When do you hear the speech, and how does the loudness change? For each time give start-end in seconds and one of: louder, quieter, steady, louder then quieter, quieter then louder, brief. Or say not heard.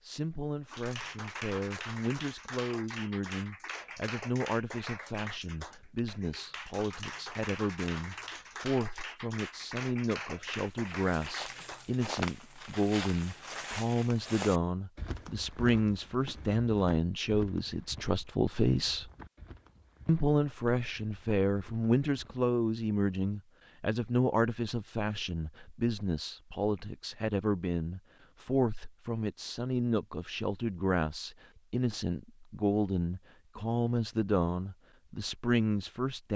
0.0-19.1 louder
20.1-36.3 steady.